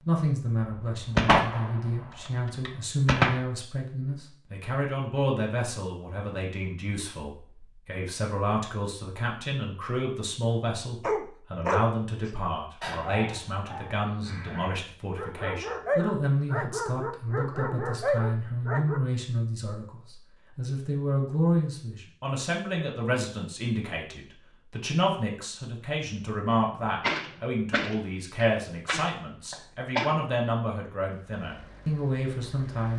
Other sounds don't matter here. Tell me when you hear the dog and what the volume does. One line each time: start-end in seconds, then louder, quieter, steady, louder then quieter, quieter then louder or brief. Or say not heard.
11.0-19.0 quieter then louder.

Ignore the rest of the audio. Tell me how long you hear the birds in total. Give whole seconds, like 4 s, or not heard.
not heard.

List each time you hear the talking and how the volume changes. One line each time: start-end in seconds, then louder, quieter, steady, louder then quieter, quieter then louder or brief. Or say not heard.
0.0-32.9 steady.